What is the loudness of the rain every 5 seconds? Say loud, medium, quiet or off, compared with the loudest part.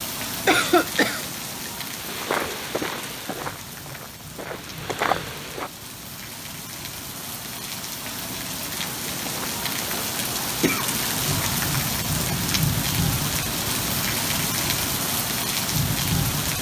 medium, medium, loud, loud.